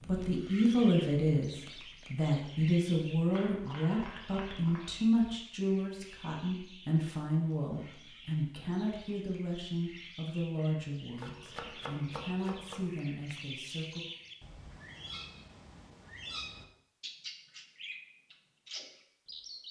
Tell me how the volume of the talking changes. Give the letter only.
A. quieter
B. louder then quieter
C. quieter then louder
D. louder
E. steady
A.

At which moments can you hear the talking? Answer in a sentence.
The talking can be heard from 0.1 to 14.1 s.